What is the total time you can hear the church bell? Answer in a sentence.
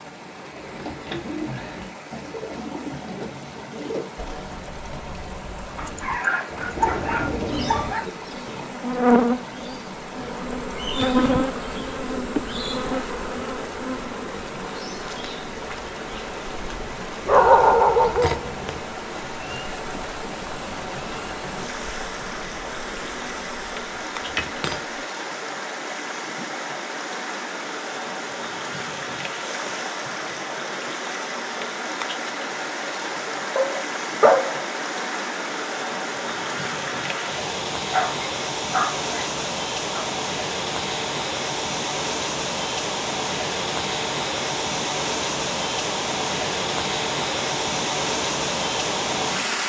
The church bell can't be heard in this clip.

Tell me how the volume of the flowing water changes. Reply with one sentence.
The loudness of the flowing water goes up.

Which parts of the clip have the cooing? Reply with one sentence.
You can hear the cooing from 0.5 to 8.8 s.